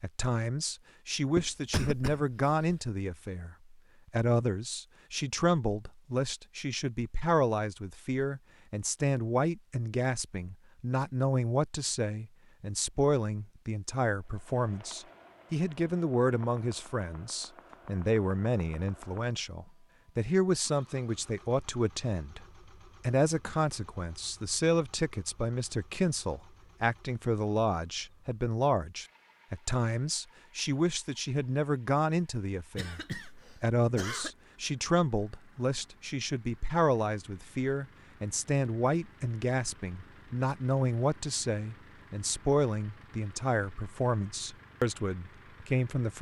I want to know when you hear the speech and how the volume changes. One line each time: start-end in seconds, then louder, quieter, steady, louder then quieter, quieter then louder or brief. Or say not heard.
0.0-46.1 steady.